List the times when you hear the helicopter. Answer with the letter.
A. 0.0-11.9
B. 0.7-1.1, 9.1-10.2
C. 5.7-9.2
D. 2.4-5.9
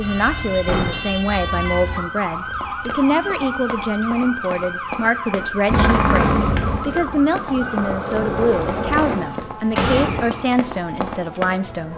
C.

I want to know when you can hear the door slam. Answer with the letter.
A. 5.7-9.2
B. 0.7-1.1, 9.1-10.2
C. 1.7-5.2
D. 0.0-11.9
B.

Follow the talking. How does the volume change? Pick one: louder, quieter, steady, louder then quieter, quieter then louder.
steady.